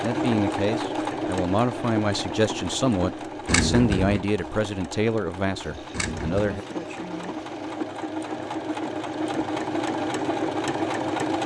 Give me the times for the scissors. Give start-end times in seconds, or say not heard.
3.5-4.2, 5.9-6.6.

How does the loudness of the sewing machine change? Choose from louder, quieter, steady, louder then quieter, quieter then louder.
quieter then louder.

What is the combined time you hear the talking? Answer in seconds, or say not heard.
7 s.